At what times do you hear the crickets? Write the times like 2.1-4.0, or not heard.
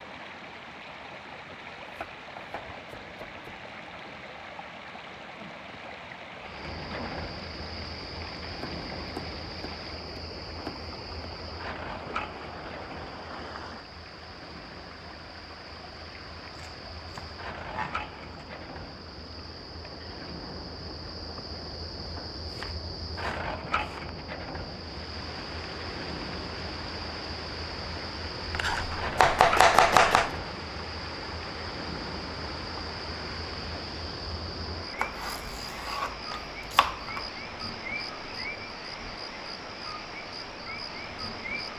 6.4-41.7.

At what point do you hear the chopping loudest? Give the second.
30 s.